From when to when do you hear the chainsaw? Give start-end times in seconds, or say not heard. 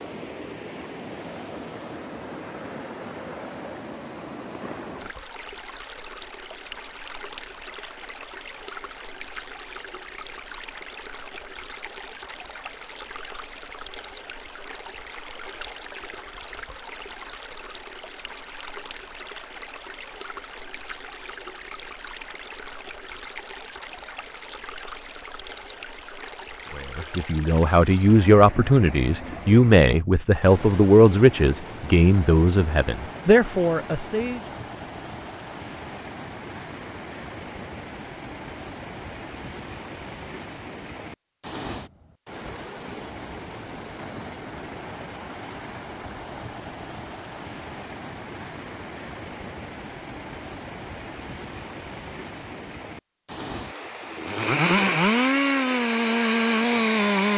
54.1-57.3.